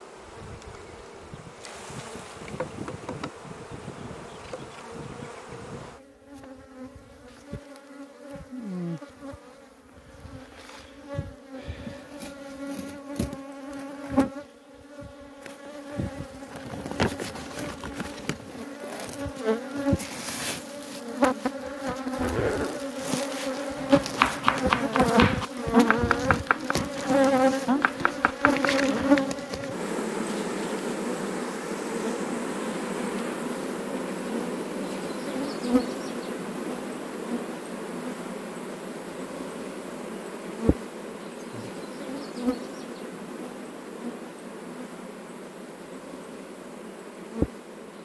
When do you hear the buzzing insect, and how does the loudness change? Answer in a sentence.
The buzzing insect can be heard from 0.0 to 48.0 s, getting louder then quieter.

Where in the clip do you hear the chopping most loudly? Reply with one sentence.
The volume of the chopping peaks at 24 seconds.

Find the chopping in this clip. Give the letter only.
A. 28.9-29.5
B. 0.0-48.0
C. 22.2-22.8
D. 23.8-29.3
D.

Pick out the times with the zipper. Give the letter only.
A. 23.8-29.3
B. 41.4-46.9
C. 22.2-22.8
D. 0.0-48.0
C.